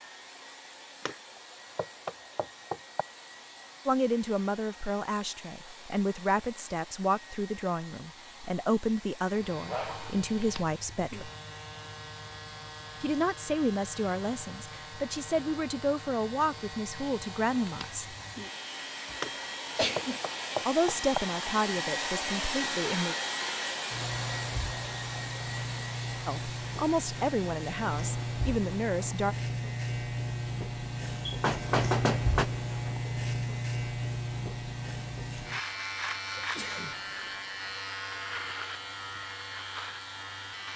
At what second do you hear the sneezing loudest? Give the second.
20 s.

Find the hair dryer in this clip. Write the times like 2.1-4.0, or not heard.
0.0-40.7.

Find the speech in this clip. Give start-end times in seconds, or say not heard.
3.9-11.3, 13.0-18.1, 20.6-23.1, 26.2-29.4.